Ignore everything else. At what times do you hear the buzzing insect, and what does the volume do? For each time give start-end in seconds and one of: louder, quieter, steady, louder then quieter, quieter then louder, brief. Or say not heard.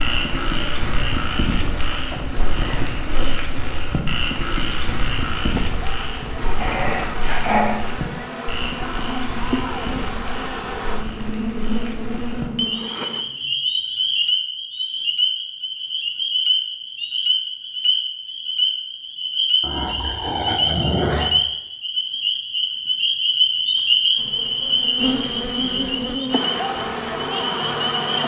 0.0-13.2 louder
24.1-28.2 steady.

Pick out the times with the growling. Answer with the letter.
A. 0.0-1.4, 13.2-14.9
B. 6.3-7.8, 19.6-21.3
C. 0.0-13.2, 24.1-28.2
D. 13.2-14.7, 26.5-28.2
B.